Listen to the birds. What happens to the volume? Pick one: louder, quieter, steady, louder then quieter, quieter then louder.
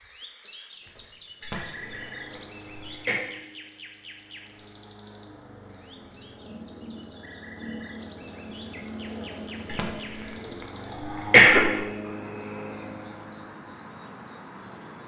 quieter then louder.